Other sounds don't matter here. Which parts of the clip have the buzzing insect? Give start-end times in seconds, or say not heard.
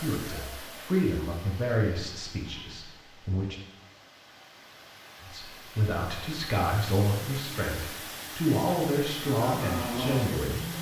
9.2-10.7.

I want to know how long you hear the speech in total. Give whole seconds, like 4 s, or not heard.
9 s.